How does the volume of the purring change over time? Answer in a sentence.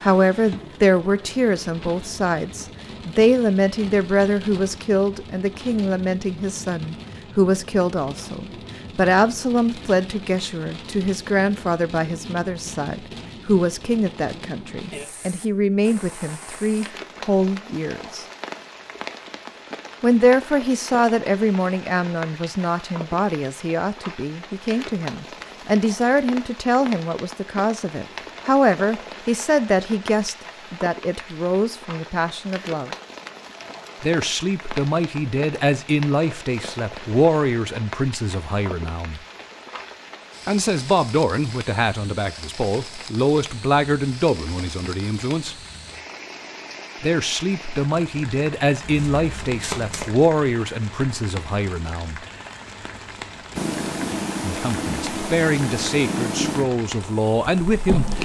The loudness of the purring goes down.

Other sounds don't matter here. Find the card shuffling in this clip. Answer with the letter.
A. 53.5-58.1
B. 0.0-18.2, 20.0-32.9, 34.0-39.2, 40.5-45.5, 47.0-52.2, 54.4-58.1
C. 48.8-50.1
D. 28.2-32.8
C.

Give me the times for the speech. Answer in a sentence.
The speech can be heard from 0.0 to 18.2 s, from 20.0 to 32.9 s, from 34.0 to 39.2 s, from 40.5 to 45.5 s, from 47.0 to 52.2 s and from 54.4 to 58.1 s.